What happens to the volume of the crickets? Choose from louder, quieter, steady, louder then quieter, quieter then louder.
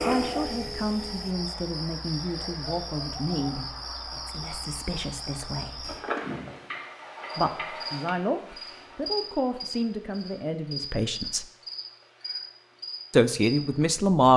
steady.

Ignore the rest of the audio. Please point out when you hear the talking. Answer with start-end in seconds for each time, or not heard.
0.0-5.9, 7.3-11.4, 13.1-14.3.